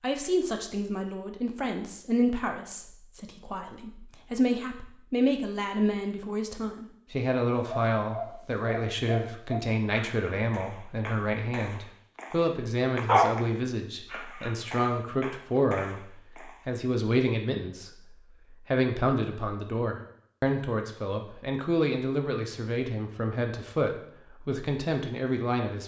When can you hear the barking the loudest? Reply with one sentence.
The volume of the barking peaks at 13 seconds.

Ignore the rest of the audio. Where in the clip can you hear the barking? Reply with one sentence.
The barking can be heard from 7.6 to 16.6 s.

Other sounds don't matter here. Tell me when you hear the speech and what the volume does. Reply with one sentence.
You can hear the speech from 0.0 to 25.8 s, at a steady volume.